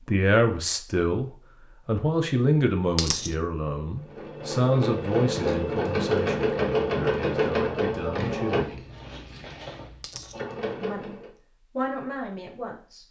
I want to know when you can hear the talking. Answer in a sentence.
The talking can be heard from 0.1 to 8.8 s and from 10.8 to 13.0 s.